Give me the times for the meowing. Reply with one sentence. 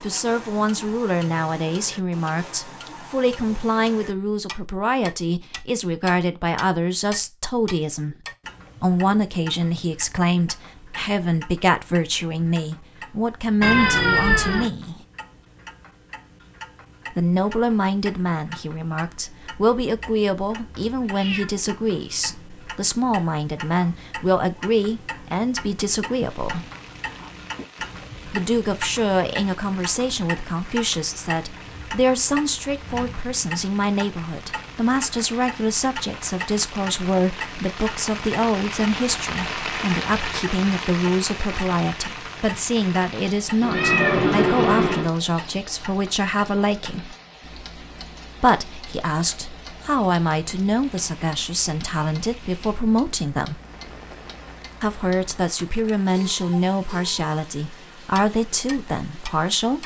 The meowing can be heard from 13.6 to 14.7 s, from 21.0 to 21.5 s and from 43.6 to 45.1 s.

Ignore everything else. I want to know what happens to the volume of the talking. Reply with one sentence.
The loudness of the talking stays about the same.